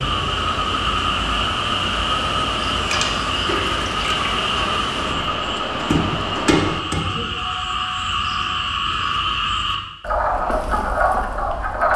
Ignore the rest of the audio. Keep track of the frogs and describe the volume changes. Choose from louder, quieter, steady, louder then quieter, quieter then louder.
steady.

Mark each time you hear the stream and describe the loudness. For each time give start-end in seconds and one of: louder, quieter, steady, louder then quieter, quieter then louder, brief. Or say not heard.
0.0-6.8 steady.